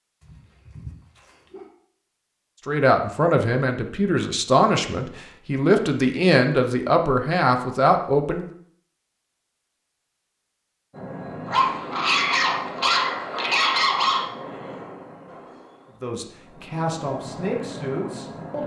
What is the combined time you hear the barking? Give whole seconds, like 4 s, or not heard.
4 s.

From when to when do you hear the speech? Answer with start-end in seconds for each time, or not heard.
2.6-8.5, 16.0-18.6.